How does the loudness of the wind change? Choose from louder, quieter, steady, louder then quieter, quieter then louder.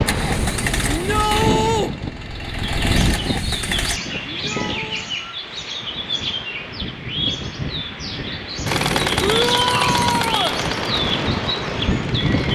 quieter then louder.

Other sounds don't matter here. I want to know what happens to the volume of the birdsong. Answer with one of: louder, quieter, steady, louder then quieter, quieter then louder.
steady.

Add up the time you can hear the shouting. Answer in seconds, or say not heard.
3 s.